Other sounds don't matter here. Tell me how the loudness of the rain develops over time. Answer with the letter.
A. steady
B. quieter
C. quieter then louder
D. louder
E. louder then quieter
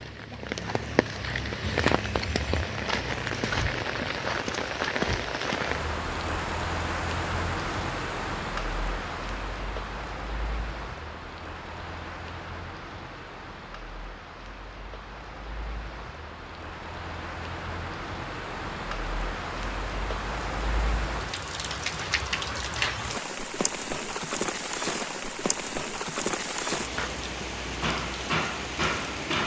C.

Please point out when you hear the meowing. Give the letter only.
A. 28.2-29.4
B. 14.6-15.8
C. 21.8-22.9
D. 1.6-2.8
D.